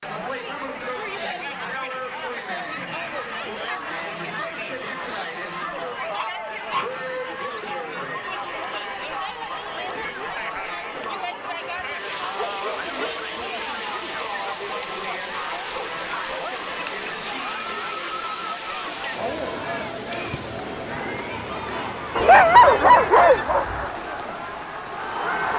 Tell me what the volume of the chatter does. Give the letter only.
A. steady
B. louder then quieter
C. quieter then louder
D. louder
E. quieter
A.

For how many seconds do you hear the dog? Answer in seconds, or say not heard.
4 s.